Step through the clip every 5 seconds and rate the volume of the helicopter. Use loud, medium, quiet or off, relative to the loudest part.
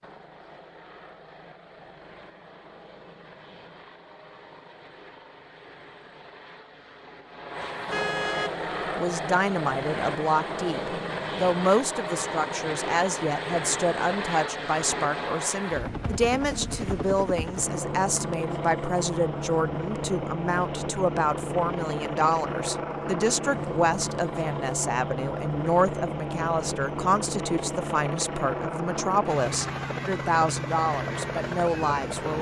quiet, loud, loud, loud, loud, loud, loud.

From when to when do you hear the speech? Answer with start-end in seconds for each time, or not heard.
8.9-32.3.